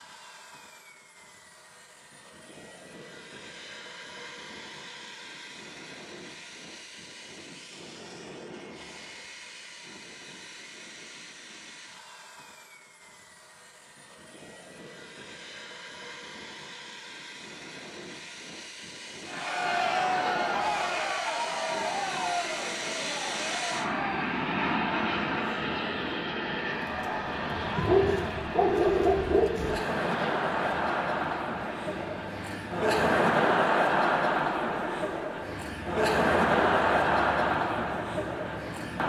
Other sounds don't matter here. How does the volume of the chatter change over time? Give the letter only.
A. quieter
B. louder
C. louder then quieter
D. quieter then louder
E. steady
D.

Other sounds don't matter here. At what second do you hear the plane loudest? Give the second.
25 s.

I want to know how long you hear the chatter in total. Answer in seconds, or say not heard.
20 s.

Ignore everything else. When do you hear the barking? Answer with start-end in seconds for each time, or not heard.
27.8-29.8.